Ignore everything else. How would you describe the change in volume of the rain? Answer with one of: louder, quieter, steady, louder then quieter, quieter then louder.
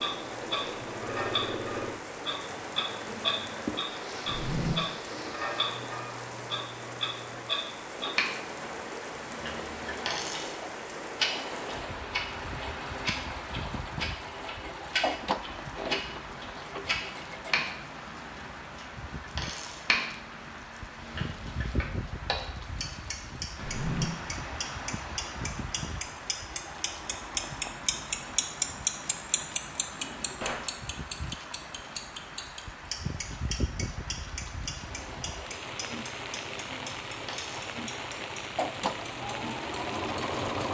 steady.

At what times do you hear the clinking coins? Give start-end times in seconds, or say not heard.
10.1-10.6, 19.4-19.9, 37.2-37.8.